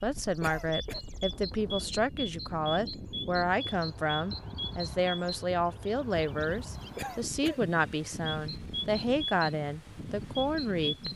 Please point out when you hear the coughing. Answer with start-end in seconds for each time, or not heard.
0.4-1.0, 7.0-7.7.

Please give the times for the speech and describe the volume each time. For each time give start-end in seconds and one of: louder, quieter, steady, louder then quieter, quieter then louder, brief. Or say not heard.
0.0-11.1 steady.